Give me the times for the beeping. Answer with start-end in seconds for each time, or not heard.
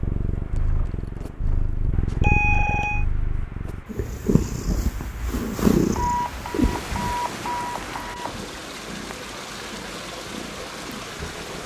2.2-3.0, 6.0-8.3.